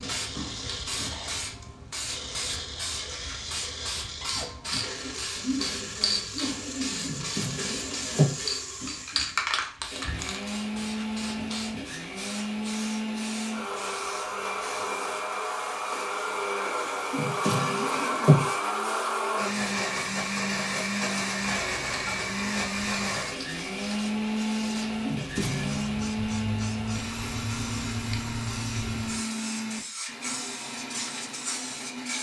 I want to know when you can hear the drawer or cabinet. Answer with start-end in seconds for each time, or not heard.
7.0-8.3, 17.1-18.4, 25.0-25.9.